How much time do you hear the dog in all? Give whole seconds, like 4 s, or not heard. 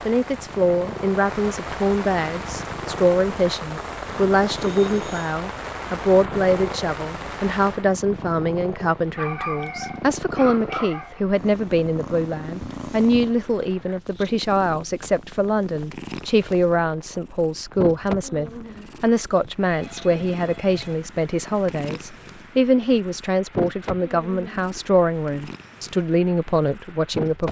2 s.